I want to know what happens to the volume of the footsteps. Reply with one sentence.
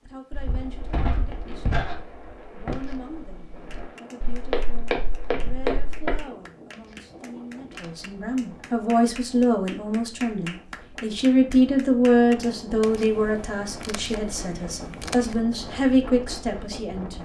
The volume of the footsteps goes down, then up.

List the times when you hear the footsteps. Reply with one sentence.
You can hear the footsteps from 0.3 to 6.2 s.